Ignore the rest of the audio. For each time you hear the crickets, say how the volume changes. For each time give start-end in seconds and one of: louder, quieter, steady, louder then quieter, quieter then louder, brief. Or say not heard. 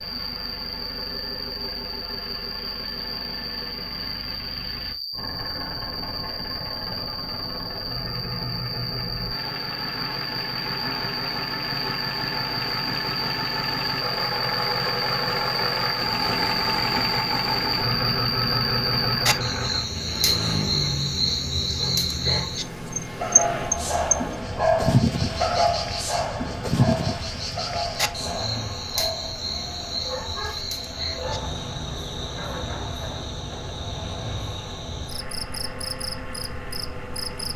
0.0-37.5 louder then quieter.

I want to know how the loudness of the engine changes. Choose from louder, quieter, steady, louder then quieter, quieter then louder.
louder then quieter.